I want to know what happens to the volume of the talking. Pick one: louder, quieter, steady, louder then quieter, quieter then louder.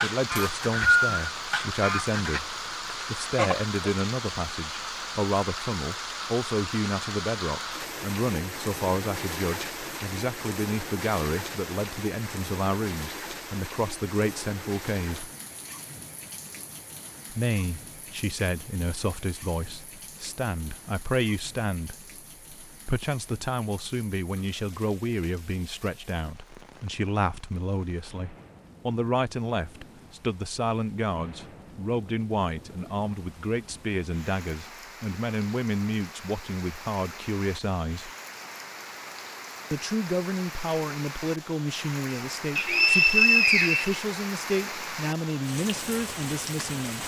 steady.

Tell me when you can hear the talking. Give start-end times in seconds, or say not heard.
0.0-15.3, 17.3-38.1, 39.7-47.0.